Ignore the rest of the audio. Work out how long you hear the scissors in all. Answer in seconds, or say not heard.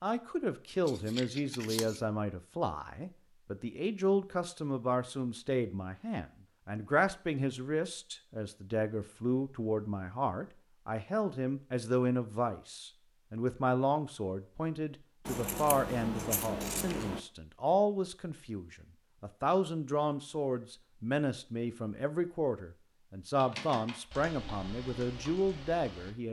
3 s.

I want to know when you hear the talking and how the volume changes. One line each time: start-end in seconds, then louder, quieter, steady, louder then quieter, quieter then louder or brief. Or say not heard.
0.0-26.2 steady.